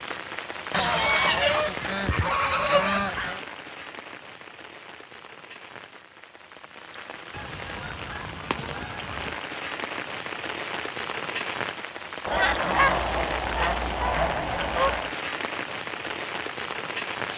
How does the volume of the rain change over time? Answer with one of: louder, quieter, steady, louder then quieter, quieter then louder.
quieter then louder.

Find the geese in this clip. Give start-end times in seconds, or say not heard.
0.7-3.5, 7.3-9.3, 12.2-15.1.